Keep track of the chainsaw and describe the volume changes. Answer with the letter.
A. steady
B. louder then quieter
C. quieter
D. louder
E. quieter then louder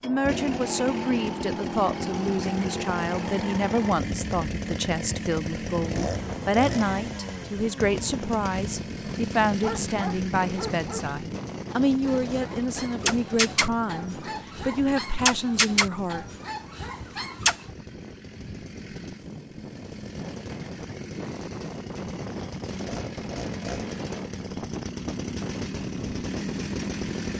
E.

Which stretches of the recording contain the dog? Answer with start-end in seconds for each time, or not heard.
9.6-17.6.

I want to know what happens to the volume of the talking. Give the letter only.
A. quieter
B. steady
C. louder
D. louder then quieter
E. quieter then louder
B.